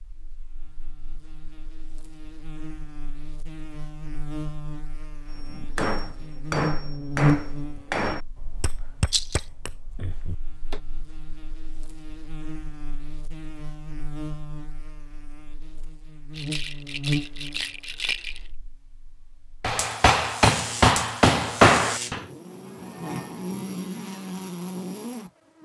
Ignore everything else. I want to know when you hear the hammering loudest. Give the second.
22 s.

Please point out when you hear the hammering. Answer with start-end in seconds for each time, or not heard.
5.3-10.8, 19.6-22.2.